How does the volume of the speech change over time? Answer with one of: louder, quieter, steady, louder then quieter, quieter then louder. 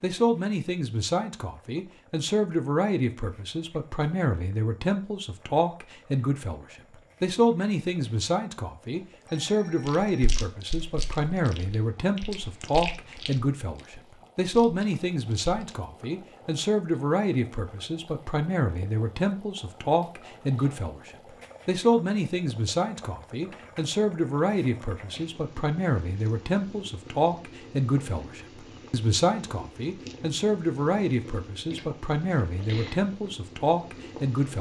steady.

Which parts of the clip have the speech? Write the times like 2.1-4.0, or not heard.
0.0-34.5.